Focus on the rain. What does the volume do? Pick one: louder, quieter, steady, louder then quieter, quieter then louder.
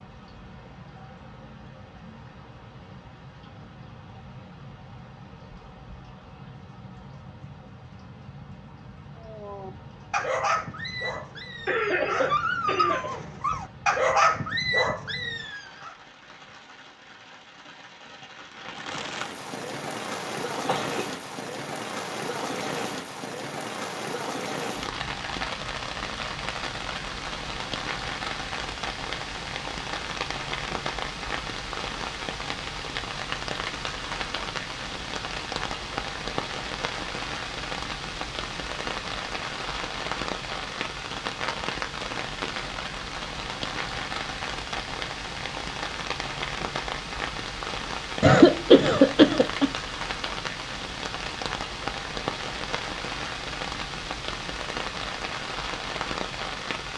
louder.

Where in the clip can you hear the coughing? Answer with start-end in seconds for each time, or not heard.
11.7-13.1, 20.6-21.1, 48.2-49.7.